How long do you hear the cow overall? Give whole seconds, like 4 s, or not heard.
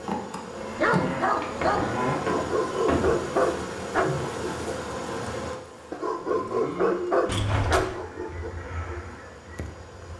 3 s.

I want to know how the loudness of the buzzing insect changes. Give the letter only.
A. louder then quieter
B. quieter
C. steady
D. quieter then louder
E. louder
B.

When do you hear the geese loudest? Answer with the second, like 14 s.
9 s.